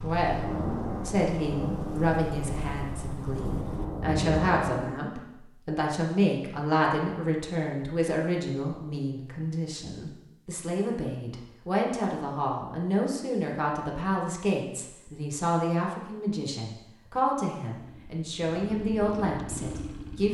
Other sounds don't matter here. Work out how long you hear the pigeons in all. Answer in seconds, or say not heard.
not heard.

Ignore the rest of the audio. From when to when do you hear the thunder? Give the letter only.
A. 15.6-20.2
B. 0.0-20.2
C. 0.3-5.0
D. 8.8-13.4
C.